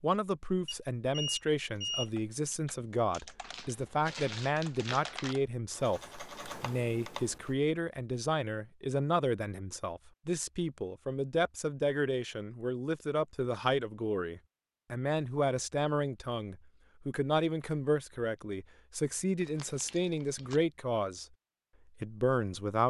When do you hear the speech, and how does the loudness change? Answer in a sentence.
The speech can be heard from 0.0 to 21.2 s, at a steady volume; and briefly from 22.0 to 22.8 s.